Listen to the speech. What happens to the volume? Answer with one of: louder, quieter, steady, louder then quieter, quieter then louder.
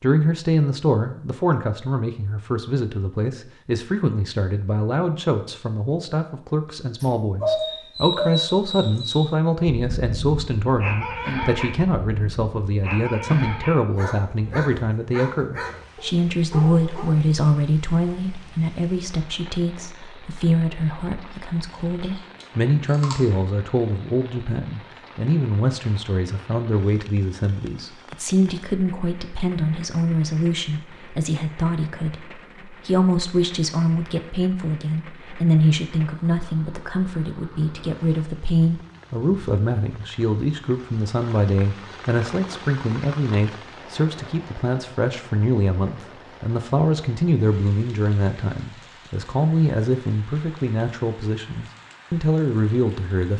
steady.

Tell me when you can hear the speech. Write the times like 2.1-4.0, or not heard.
0.0-53.3.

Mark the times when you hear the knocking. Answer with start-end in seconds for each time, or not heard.
not heard.